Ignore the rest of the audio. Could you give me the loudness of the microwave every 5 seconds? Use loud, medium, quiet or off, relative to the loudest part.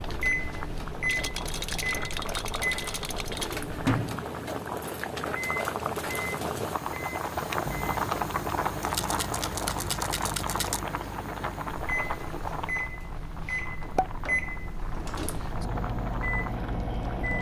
loud, medium, loud, loud.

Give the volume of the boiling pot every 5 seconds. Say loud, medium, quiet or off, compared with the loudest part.
medium, loud, medium, medium.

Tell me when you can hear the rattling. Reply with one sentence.
The rattling can be heard from 1.1 to 3.6 s and from 8.8 to 10.8 s.